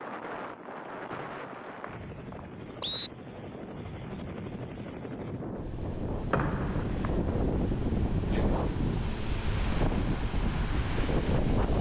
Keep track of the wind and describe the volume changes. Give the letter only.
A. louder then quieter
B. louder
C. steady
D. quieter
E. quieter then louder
B.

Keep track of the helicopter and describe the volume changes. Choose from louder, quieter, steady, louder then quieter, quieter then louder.
louder.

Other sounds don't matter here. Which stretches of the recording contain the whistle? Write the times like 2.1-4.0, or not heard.
1.1-3.1, 6.3-7.0.